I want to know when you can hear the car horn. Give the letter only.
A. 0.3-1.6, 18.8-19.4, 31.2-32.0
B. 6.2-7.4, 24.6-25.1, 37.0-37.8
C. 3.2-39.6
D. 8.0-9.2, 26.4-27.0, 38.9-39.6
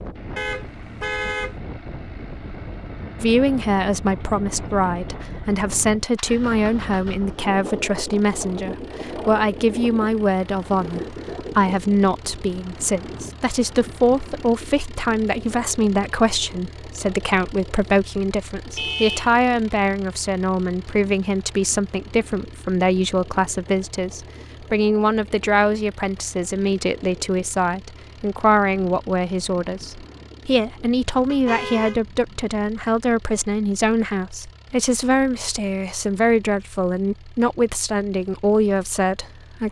A.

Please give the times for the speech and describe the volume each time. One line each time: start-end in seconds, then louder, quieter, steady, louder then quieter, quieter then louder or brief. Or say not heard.
3.2-39.6 steady.